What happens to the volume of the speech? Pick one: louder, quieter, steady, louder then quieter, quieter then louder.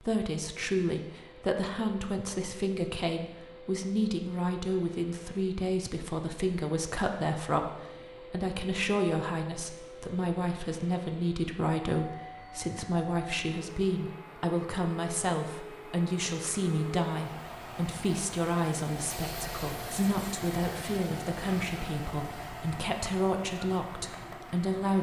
steady.